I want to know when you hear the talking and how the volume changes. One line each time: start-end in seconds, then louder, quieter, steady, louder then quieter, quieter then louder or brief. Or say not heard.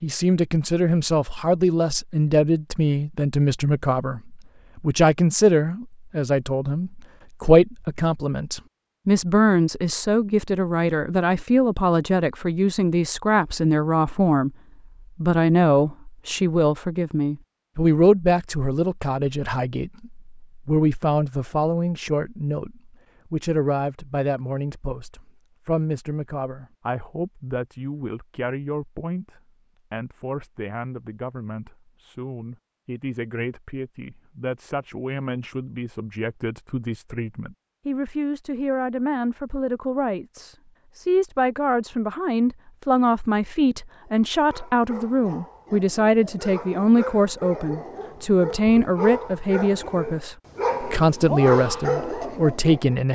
0.0-14.6 steady
15.2-53.1 quieter then louder.